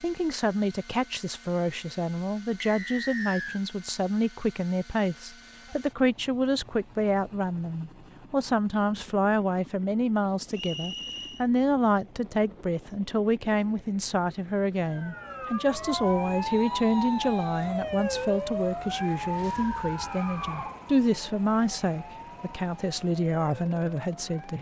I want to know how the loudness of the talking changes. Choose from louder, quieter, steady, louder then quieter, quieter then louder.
steady.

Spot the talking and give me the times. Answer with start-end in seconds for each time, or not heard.
0.0-24.5.